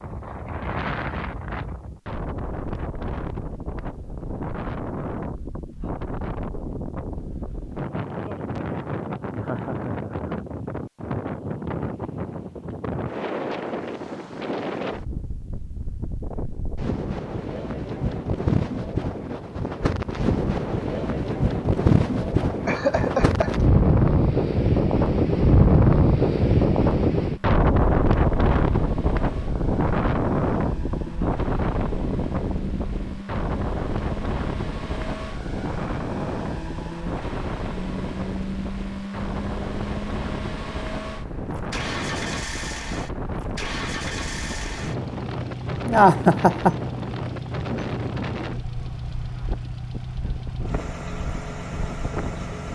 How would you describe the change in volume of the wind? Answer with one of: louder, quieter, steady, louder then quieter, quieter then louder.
louder then quieter.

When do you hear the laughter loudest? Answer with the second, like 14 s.
46 s.